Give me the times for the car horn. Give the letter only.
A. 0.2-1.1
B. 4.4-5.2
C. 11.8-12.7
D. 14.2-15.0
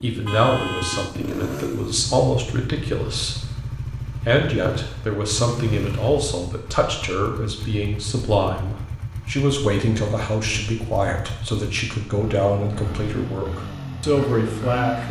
A.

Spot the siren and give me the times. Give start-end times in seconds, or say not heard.
not heard.